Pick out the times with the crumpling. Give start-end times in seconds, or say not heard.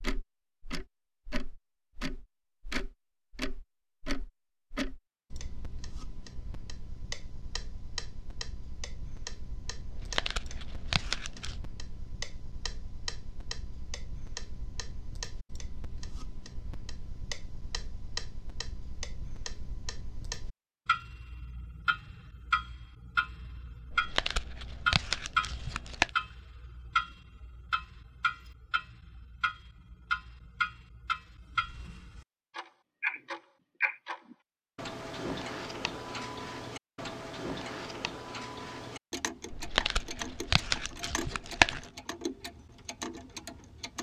9.9-11.6, 23.9-26.1, 39.5-41.9.